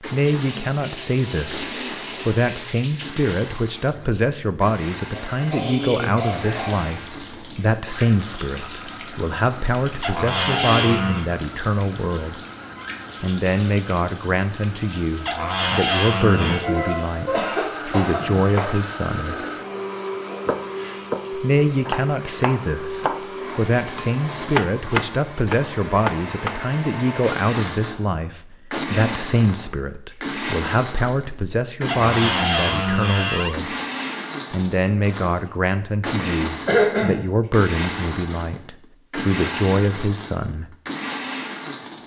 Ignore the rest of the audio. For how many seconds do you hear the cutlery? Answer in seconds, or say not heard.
not heard.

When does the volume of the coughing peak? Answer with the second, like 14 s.
37 s.